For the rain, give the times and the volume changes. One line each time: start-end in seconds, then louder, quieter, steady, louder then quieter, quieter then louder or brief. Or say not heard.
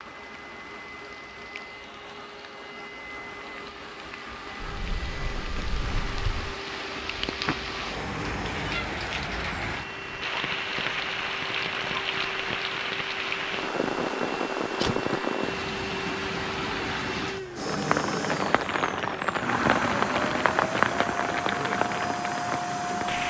0.0-23.2 louder.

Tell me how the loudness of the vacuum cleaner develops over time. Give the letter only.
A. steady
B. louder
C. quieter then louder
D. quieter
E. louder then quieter
B.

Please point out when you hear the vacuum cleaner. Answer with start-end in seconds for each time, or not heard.
0.0-23.2.